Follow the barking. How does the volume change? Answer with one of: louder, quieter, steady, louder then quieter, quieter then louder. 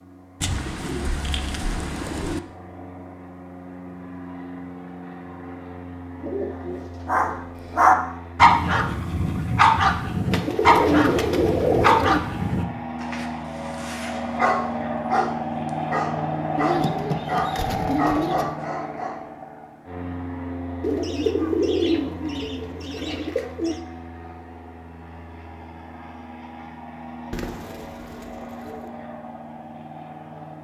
quieter.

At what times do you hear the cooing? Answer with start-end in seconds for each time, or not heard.
0.4-2.4, 6.2-7.5, 10.3-12.2, 16.6-18.5, 20.8-23.8, 27.3-28.9.